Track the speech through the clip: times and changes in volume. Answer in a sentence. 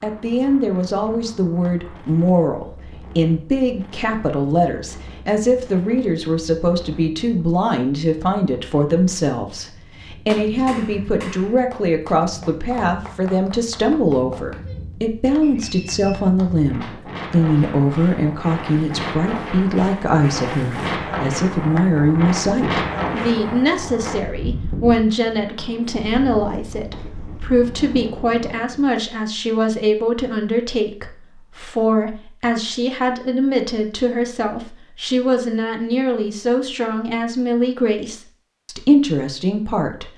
You can hear the speech from 0.0 to 40.1 s, at a steady volume.